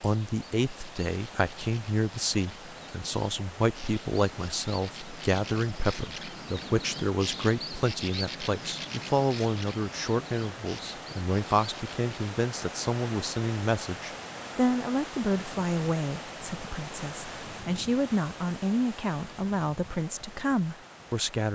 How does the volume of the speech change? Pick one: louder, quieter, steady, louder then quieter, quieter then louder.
steady.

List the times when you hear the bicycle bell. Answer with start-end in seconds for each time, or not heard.
not heard.